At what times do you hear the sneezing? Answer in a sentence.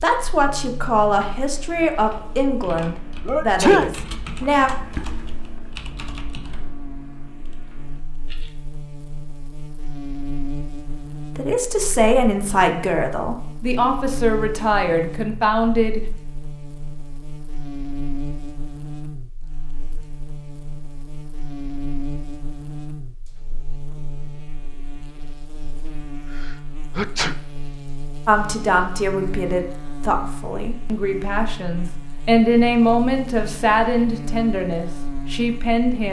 You can hear the sneezing from 3.2 to 3.9 s and from 26.4 to 27.4 s.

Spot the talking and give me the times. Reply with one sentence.
The talking can be heard from 0.0 to 4.7 s, from 11.2 to 16.1 s and from 28.2 to 36.0 s.